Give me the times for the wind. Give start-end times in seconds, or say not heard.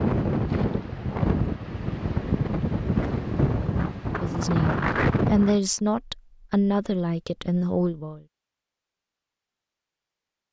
0.0-5.6.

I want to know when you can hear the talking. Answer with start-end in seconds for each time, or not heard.
4.0-8.2.